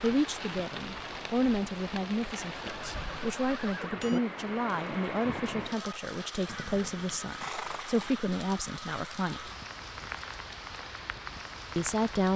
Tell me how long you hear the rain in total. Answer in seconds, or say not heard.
12 s.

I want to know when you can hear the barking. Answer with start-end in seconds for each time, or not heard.
not heard.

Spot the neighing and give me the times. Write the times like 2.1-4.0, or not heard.
2.6-4.2, 6.5-8.2.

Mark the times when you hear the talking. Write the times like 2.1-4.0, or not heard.
0.0-9.5, 11.8-12.3.